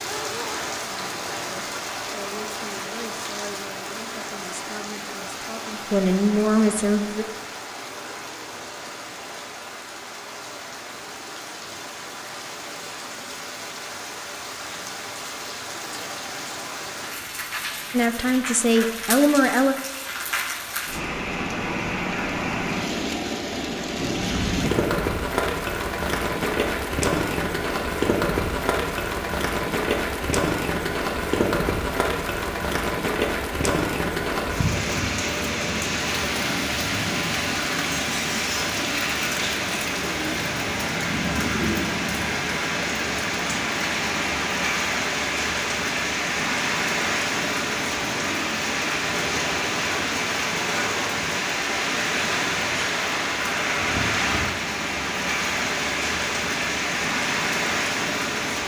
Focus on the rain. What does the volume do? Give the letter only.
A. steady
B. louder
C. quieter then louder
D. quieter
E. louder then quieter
B.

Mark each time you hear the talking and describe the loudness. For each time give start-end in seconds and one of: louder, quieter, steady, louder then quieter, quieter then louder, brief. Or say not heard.
0.0-7.2 louder
17.9-19.8 brief.